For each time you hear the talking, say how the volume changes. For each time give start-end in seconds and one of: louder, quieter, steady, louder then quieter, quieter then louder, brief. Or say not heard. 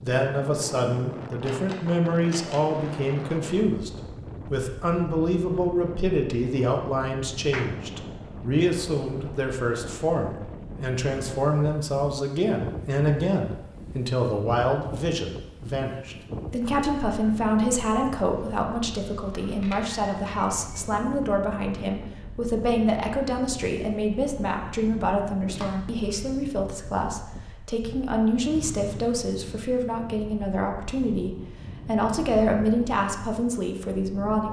0.0-34.4 steady.